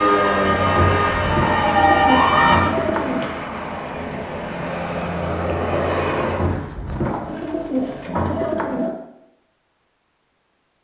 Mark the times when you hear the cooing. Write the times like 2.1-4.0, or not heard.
0.6-3.3, 6.0-8.9.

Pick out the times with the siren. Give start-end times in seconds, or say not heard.
0.0-2.6.